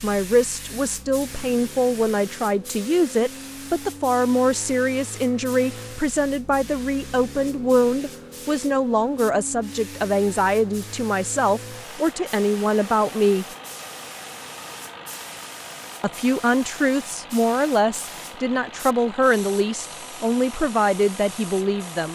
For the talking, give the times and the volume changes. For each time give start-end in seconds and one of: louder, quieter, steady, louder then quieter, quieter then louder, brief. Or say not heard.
0.0-13.4 steady
16.0-22.1 steady.